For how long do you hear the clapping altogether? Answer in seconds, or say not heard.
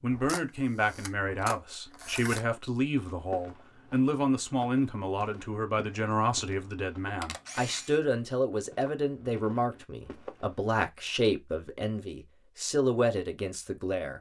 not heard.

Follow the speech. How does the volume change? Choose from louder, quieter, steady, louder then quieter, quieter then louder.
steady.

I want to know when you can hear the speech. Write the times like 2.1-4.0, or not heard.
0.0-14.1.